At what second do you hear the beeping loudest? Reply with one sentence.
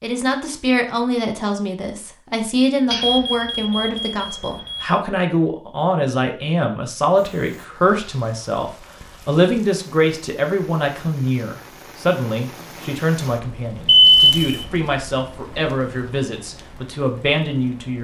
The loudest moment of the beeping is at 14 seconds.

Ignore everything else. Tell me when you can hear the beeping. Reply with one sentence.
The beeping can be heard from 2.9 to 5.0 s and from 13.8 to 14.7 s.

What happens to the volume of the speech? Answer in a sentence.
The volume of the speech stays about the same.